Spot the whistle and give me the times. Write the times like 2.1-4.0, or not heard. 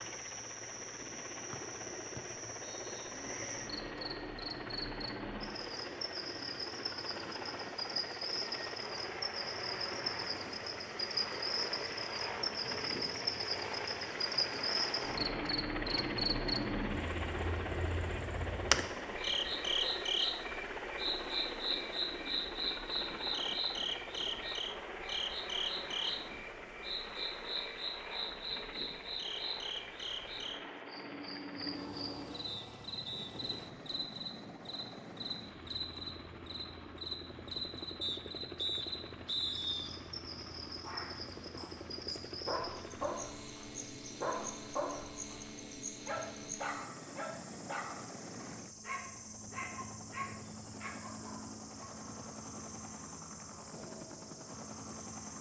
1.5-3.1, 32.5-33.3, 38.0-40.0.